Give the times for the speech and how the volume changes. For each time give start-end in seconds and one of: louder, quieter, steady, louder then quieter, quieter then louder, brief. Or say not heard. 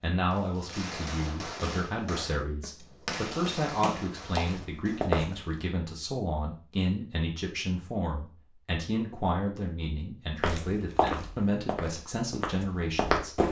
0.0-13.4 steady.